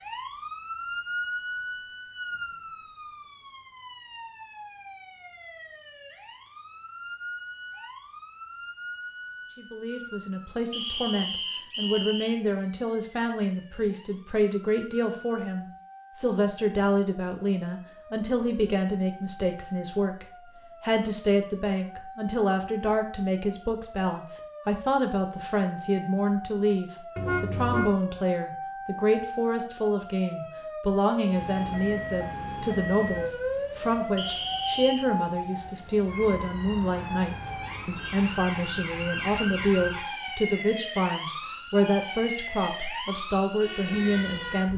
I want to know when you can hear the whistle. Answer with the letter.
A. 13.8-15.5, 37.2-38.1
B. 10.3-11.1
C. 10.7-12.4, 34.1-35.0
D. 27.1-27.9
C.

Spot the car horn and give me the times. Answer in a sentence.
You can hear the car horn from 27.1 to 27.9 s.